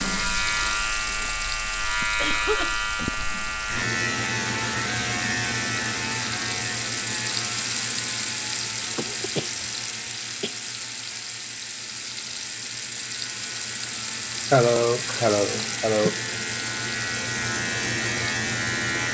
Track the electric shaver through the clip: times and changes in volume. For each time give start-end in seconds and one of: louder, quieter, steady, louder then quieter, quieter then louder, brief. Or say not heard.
0.0-19.0 quieter then louder.